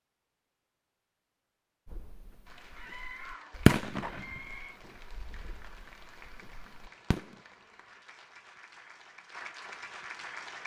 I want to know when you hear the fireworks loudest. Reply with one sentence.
The volume of the fireworks peaks at 4 seconds.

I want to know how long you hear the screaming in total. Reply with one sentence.
You can hear the screaming for 2 seconds altogether.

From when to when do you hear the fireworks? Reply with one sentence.
You can hear the fireworks from 1.9 to 7.3 s.